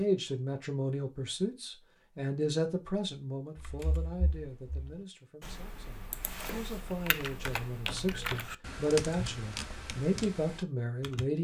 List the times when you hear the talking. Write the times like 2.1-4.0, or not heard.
0.0-11.3.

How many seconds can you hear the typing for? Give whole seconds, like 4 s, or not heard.
8 s.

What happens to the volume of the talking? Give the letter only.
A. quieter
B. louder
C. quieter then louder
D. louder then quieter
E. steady
C.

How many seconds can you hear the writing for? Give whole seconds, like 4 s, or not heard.
not heard.